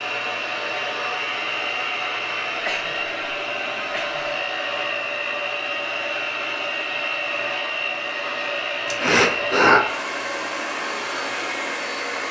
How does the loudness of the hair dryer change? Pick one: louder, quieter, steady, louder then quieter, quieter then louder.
steady.